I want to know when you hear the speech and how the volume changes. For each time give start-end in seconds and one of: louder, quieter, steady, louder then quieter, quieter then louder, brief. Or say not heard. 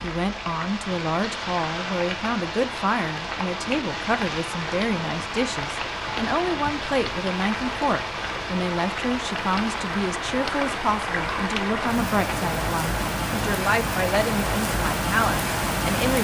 0.0-16.2 steady.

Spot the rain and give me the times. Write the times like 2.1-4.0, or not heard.
0.0-16.2.